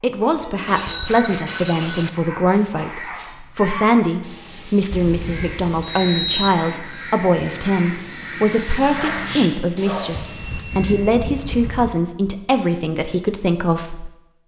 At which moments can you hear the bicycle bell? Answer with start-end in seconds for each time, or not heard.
0.3-2.1, 4.9-6.5, 10.1-12.0.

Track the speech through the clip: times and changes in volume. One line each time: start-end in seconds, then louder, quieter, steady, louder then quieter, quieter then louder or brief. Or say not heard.
0.0-14.1 steady.